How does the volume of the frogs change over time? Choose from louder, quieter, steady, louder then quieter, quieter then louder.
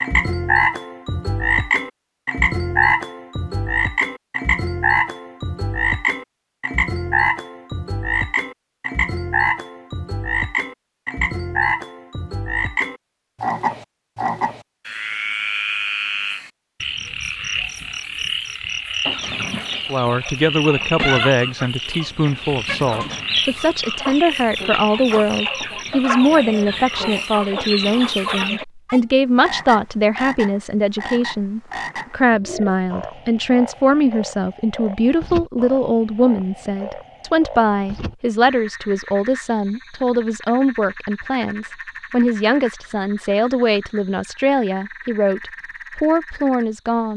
quieter.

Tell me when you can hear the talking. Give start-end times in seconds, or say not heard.
19.9-47.1.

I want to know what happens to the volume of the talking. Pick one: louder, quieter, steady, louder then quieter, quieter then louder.
steady.